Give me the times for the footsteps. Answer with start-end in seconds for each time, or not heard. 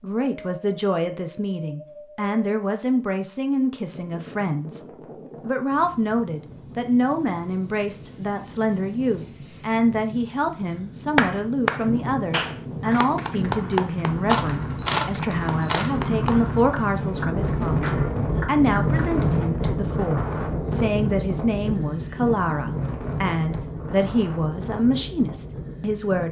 not heard.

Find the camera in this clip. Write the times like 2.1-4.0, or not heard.
14.2-15.9.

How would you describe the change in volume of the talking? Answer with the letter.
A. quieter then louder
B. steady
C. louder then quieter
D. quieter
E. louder
B.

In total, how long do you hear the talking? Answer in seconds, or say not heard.
26 s.